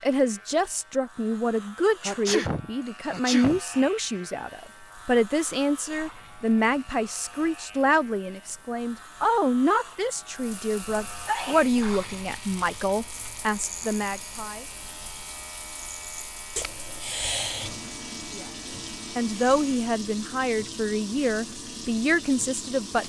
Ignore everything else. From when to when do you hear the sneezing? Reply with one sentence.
You can hear the sneezing from 2.0 to 3.6 s, from 10.8 to 11.8 s and from 16.6 to 17.9 s.